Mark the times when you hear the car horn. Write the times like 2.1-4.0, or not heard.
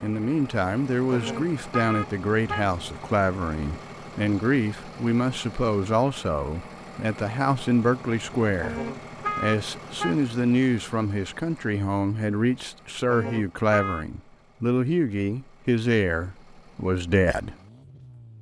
1.1-2.8, 8.6-10.2, 13.1-14.1.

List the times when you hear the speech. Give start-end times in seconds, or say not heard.
0.0-17.6.